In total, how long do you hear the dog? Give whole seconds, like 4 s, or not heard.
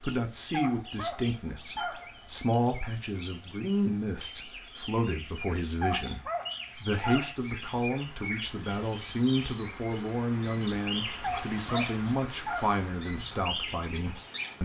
5 s.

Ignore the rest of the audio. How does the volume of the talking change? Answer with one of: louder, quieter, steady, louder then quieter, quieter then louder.
steady.